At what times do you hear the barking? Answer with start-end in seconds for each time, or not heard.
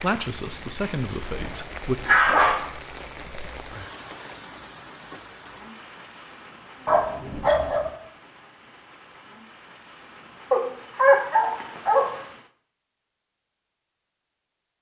0.8-2.6, 6.8-7.9, 10.5-12.2.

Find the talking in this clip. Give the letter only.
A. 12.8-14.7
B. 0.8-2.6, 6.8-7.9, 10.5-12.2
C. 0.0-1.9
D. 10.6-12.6
C.